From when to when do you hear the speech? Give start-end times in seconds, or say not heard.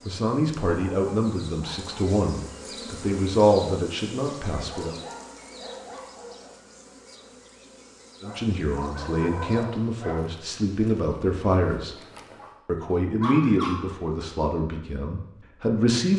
0.0-5.0, 8.2-11.9, 12.7-16.1.